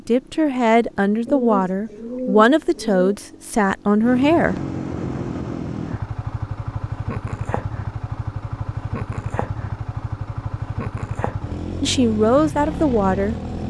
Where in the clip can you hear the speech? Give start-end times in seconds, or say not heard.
0.1-4.5, 11.8-13.3.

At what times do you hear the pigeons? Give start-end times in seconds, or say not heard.
1.2-3.1.